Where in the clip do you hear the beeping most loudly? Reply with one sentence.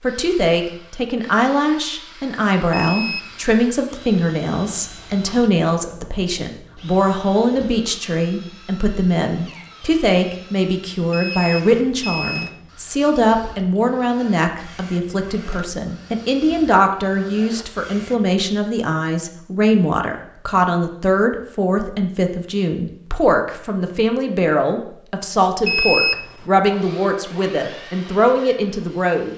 The volume of the beeping peaks at 26 seconds.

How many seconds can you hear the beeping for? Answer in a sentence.
The beeping can be heard for 3 seconds in total.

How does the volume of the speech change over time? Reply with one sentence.
The loudness of the speech stays about the same.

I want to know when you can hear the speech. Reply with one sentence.
You can hear the speech from 0.0 to 29.3 s.